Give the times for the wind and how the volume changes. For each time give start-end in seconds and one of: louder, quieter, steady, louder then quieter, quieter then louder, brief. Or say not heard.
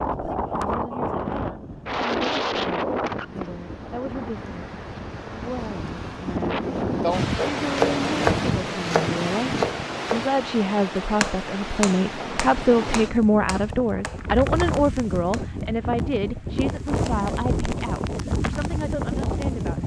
0.0-19.8 steady.